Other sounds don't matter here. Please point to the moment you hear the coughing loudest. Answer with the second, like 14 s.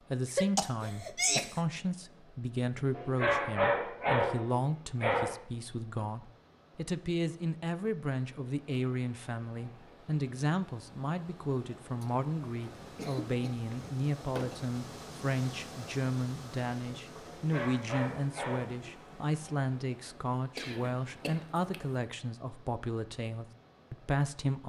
1 s.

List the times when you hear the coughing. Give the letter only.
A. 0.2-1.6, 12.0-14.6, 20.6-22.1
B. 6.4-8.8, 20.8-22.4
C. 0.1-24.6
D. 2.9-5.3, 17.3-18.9
A.